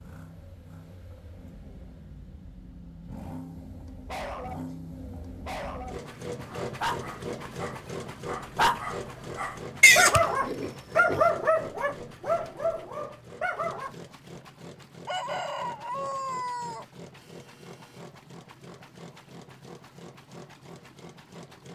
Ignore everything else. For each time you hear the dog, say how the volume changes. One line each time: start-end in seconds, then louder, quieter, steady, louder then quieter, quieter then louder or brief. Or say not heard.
4.0-4.8 brief
5.5-13.9 louder then quieter.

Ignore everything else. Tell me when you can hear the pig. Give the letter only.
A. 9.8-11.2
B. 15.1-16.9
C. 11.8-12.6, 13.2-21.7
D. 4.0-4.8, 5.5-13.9
A.